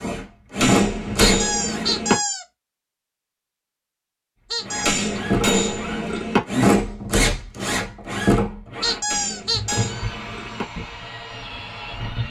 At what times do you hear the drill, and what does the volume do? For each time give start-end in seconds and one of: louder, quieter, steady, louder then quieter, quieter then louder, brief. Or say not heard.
0.0-1.9 brief
4.6-12.2 louder then quieter.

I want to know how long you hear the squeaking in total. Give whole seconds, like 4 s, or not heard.
3 s.